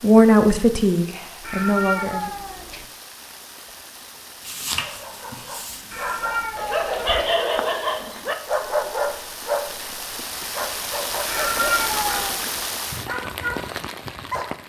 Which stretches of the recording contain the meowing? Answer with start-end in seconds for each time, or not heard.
1.4-2.9, 5.9-7.2, 11.2-12.4.